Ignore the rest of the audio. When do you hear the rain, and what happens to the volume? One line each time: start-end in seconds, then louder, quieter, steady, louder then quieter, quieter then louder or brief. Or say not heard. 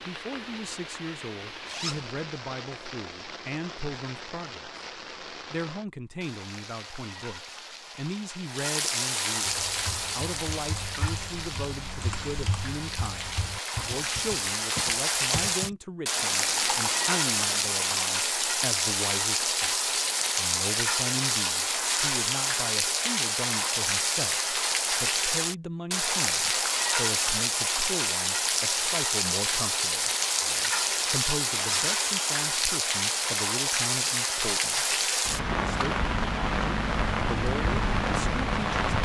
0.0-39.0 louder.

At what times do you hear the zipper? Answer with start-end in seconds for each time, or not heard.
1.6-2.1, 31.5-31.9.